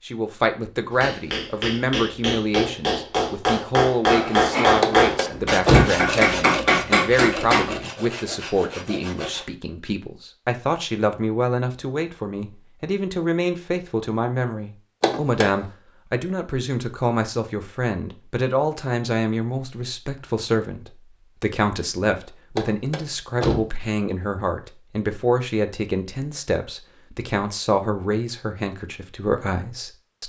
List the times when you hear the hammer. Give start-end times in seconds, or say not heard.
0.9-7.8.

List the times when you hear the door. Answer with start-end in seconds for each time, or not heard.
4.8-6.0, 15.0-15.4, 22.6-23.7.